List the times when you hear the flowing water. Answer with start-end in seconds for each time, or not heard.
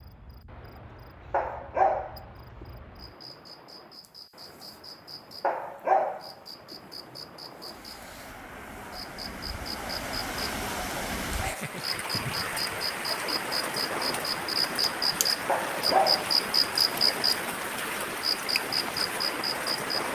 0.0-20.0.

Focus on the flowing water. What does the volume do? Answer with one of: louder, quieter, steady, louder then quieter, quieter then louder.
louder.